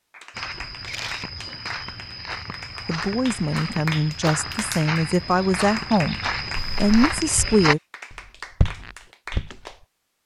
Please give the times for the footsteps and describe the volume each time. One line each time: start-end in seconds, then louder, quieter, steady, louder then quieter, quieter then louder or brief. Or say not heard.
0.3-9.8 louder.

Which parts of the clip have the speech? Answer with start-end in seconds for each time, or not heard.
2.9-7.8.